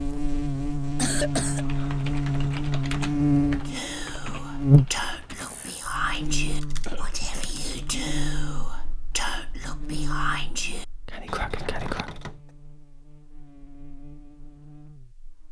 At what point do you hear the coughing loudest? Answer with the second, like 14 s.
1 s.